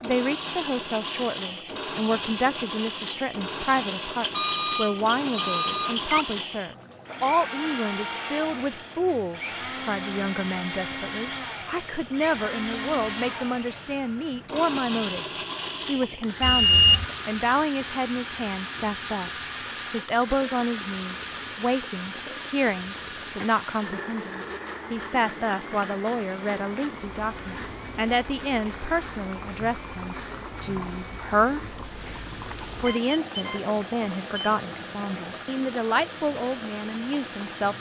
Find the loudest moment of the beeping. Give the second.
17 s.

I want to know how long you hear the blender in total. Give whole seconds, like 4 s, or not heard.
38 s.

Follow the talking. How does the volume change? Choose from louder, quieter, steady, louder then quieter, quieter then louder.
steady.